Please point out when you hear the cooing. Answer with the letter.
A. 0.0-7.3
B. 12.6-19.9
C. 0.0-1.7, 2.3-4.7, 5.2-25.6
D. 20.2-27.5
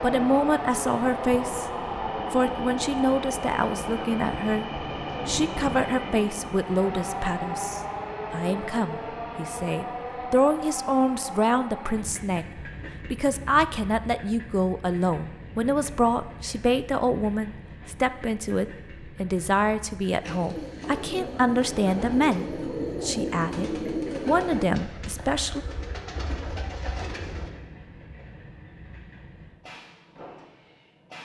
D.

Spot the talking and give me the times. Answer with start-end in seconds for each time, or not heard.
0.0-1.7, 2.3-4.7, 5.2-25.6.